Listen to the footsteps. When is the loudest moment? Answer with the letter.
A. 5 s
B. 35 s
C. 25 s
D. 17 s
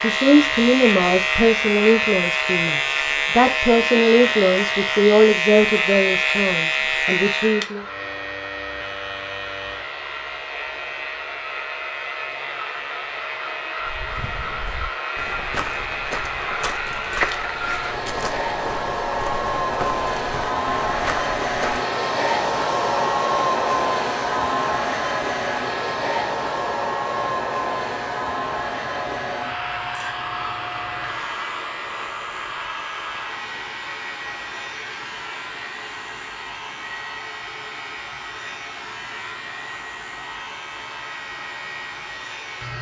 D.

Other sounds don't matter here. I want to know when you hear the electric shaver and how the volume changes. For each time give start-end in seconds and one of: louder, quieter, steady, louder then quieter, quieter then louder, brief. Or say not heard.
0.0-42.7 quieter.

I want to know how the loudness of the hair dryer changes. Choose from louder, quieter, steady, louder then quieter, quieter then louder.
louder then quieter.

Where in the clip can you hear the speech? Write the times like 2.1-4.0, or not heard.
0.0-7.8.